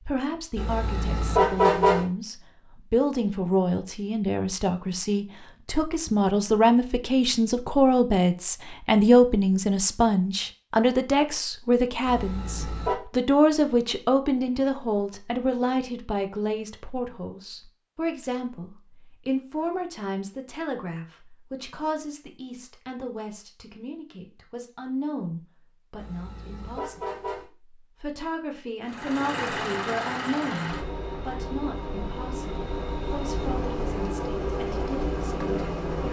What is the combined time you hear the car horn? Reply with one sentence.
The car horn can be heard for 4 seconds in total.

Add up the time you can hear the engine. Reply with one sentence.
The engine can be heard for 7 seconds in total.